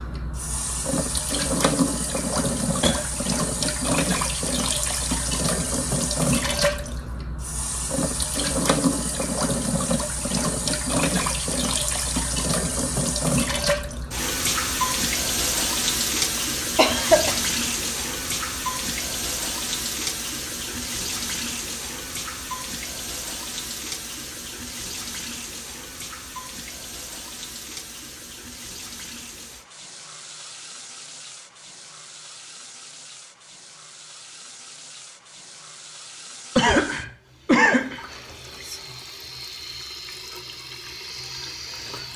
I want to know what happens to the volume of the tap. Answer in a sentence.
The loudness of the tap goes down.